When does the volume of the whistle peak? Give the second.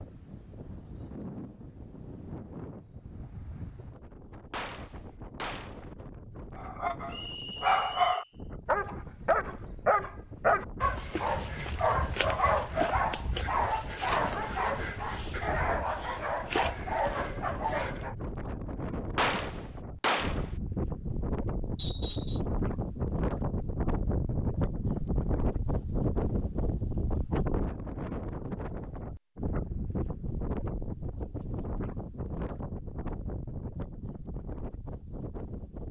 22 s.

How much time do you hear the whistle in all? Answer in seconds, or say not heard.
2 s.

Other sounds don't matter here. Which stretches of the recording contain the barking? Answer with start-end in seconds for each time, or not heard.
6.5-18.1.